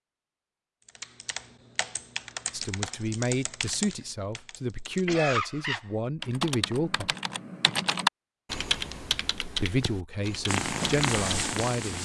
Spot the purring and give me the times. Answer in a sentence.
You can hear the purring from 10.4 to 11.9 s.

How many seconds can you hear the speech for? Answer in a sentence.
The speech can be heard for 7 seconds in total.